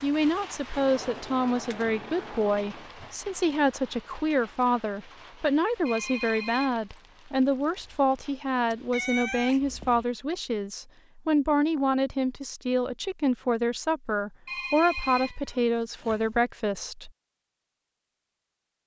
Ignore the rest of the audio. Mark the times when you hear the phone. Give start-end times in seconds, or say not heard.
5.8-6.8, 14.4-15.3.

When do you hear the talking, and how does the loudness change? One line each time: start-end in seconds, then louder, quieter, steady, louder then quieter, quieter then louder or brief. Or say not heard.
0.0-17.1 steady.